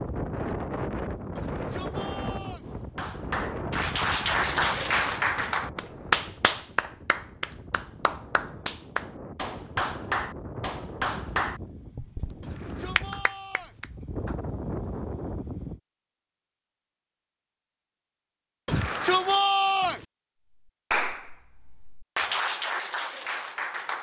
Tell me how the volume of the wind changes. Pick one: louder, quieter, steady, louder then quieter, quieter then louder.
quieter then louder.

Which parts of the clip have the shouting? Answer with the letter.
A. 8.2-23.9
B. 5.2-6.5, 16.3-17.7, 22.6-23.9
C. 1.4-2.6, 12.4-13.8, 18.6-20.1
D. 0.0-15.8
C.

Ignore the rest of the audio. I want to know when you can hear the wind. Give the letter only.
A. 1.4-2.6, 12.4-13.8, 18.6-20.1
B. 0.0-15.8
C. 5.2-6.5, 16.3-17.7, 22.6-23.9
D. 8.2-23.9
B.